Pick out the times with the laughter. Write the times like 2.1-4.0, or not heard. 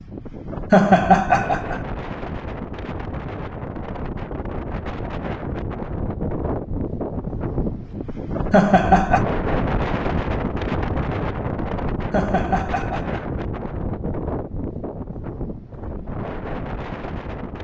0.7-1.8, 8.5-9.2, 12.1-13.2.